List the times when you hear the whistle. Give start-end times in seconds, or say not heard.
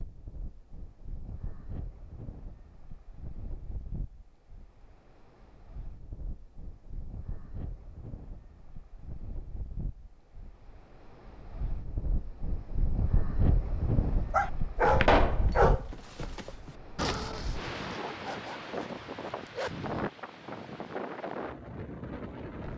not heard.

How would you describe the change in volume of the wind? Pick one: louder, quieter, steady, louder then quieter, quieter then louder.
louder.